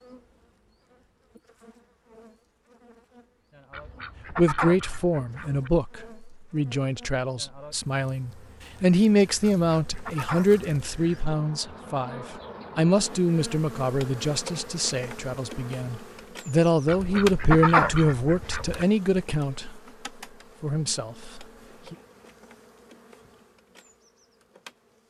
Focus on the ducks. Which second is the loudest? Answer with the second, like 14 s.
18 s.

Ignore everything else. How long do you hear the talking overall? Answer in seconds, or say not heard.
17 s.